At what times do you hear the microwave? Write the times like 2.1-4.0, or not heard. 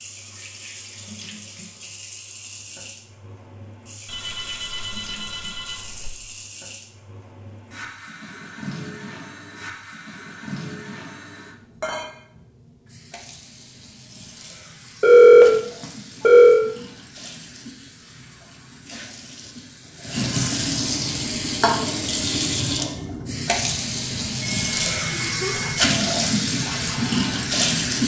not heard.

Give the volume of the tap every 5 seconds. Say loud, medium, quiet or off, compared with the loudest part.
quiet, quiet, quiet, quiet, loud, loud.